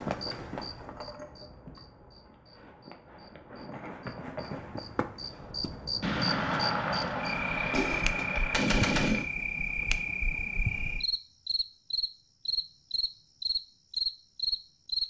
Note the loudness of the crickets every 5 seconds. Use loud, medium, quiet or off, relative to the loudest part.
medium, loud, loud.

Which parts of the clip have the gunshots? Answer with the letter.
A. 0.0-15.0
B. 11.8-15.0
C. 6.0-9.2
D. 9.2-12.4
C.